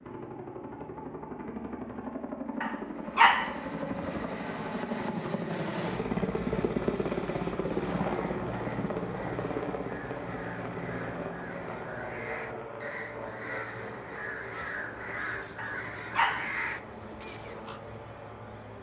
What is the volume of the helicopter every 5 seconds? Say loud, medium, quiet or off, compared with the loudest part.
medium, loud, medium, quiet.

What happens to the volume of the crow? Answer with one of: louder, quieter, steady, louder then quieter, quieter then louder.
louder.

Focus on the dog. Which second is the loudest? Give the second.
3 s.